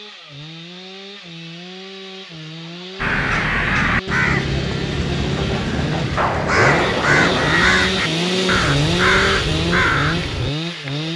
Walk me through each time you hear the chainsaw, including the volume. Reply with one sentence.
The chainsaw can be heard from 0.0 to 11.1 s, getting louder.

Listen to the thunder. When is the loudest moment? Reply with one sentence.
The loudest moment of the thunder is at 7 seconds.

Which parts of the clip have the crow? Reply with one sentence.
The crow can be heard from 3.0 to 10.5 s.